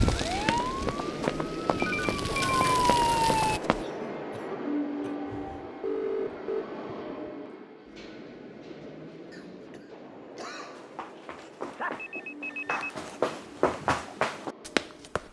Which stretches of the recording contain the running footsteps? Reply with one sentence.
You can hear the running footsteps from 0.0 to 3.9 s and from 10.8 to 15.2 s.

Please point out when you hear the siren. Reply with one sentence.
You can hear the siren from 0.0 to 3.6 s.